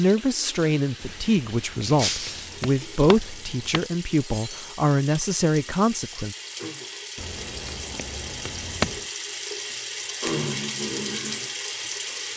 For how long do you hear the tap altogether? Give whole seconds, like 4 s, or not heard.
12 s.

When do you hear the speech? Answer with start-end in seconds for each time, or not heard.
0.0-6.3.